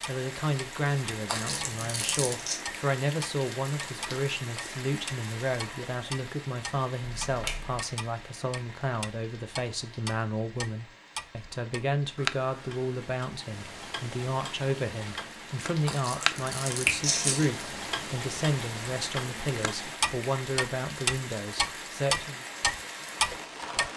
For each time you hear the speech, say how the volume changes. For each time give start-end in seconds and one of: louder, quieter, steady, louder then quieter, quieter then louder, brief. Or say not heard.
0.1-22.4 steady.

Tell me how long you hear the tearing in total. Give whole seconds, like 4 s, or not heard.
3 s.